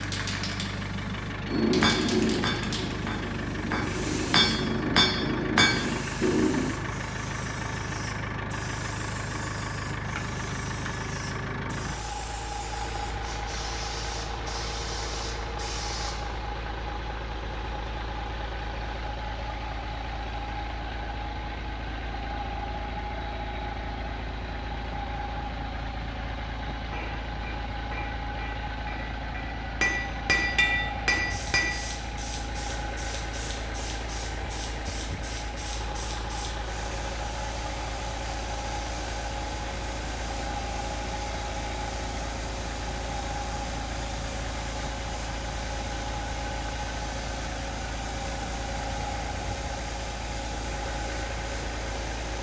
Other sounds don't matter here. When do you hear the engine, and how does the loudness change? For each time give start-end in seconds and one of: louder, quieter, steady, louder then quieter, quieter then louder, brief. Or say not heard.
0.0-52.3 steady.